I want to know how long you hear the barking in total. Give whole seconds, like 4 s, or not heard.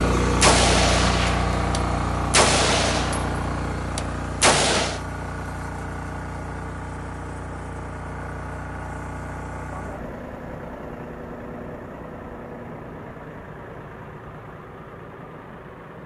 not heard.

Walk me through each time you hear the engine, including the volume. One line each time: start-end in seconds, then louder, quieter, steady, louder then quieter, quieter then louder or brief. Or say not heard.
0.0-16.0 quieter.